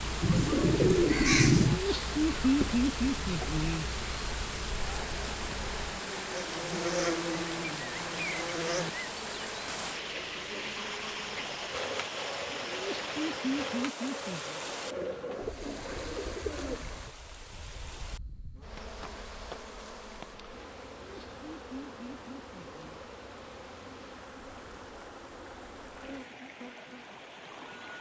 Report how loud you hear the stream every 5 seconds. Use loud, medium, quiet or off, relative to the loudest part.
loud, loud, loud, medium, quiet, medium.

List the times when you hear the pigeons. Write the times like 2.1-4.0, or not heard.
0.2-1.8, 14.8-16.9.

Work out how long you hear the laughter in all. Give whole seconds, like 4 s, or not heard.
6 s.